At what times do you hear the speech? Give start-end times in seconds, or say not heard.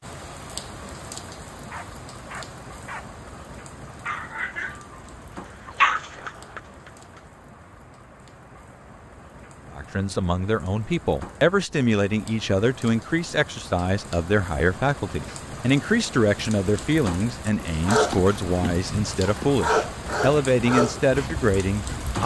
9.8-22.2.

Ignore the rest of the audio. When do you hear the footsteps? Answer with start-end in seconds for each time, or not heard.
not heard.